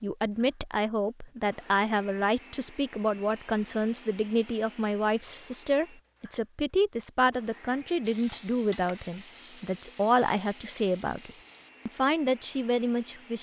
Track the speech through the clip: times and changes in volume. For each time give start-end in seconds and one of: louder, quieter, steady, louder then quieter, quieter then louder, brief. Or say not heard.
0.0-13.3 steady.